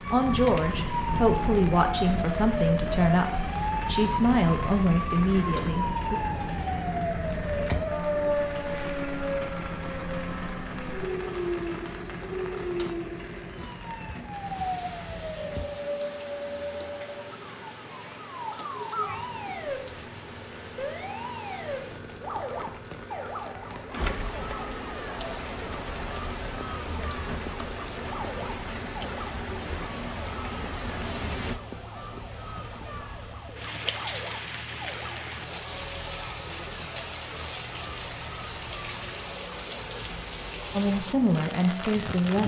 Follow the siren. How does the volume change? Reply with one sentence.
The volume of the siren goes down.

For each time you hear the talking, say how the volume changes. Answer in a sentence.
You can hear the talking from 0.1 to 6.2 s, at a steady volume; and briefly from 40.8 to 42.4 s.